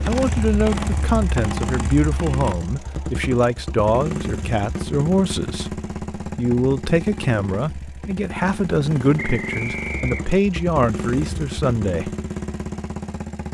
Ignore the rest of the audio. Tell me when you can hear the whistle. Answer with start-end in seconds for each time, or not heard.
9.2-10.3.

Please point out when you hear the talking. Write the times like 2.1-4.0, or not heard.
0.1-12.2.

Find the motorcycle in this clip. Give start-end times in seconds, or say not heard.
0.0-13.5.